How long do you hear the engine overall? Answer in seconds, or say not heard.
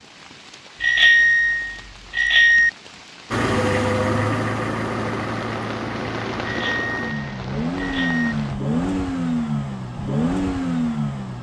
8 s.